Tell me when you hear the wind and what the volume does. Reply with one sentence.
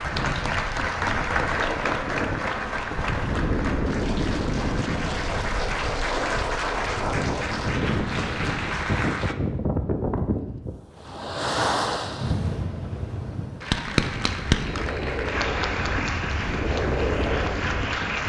You can hear the wind from 0.0 to 18.2 s, at a steady volume.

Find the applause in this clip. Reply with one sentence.
The applause can be heard from 0.0 to 9.3 s and from 13.6 to 18.2 s.